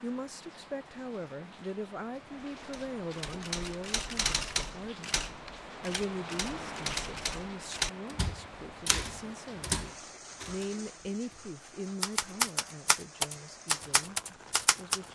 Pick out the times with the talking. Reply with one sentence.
The talking can be heard from 0.0 to 15.1 s.